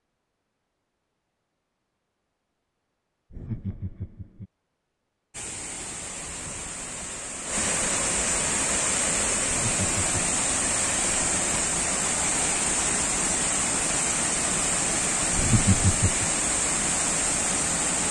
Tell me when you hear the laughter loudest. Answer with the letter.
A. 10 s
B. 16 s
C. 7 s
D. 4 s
B.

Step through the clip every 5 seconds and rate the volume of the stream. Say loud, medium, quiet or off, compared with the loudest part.
off, loud, loud, loud.